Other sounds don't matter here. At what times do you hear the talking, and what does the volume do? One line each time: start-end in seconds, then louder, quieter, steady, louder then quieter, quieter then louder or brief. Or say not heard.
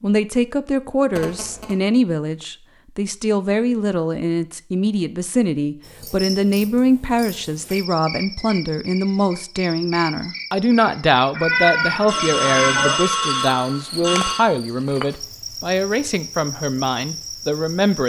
0.0-18.0 steady.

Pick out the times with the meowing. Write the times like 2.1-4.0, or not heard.
11.3-13.0.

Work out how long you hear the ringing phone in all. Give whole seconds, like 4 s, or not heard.
3 s.